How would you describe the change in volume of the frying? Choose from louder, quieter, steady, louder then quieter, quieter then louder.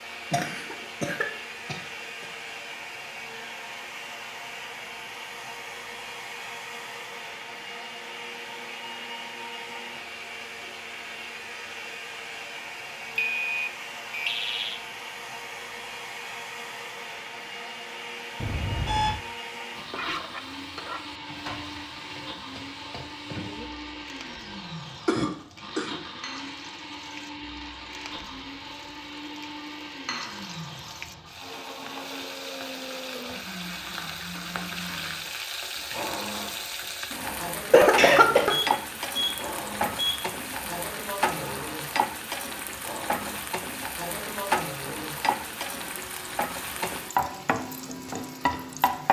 louder.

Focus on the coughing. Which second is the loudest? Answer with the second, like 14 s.
38 s.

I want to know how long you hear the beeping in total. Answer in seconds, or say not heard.
5 s.